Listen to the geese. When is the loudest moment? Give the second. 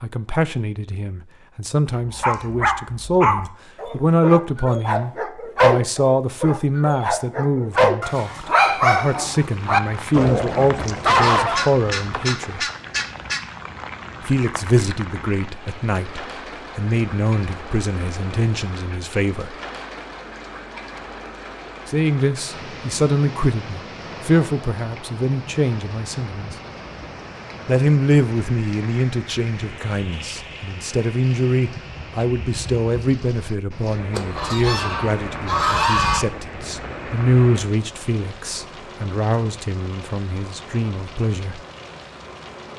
36 s.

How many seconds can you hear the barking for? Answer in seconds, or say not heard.
10 s.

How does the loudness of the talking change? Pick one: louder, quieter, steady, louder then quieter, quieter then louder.
steady.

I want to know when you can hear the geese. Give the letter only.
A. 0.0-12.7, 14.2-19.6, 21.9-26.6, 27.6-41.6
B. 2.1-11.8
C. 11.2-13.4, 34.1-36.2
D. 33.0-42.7
C.